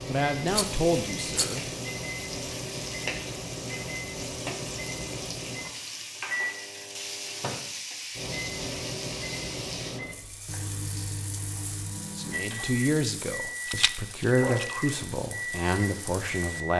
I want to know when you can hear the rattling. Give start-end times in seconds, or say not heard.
0.5-1.6, 13.7-14.8.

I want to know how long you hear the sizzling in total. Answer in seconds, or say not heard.
17 s.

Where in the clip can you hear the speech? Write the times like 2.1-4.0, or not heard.
0.1-1.6, 12.2-16.7.